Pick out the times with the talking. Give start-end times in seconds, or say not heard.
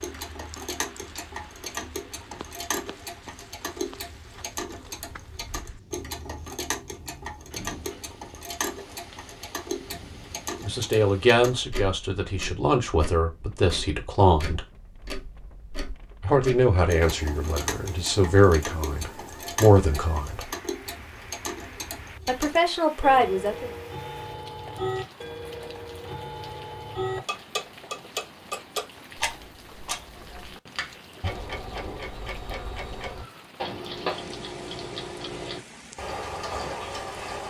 10.6-14.7, 16.2-20.5, 22.2-23.7.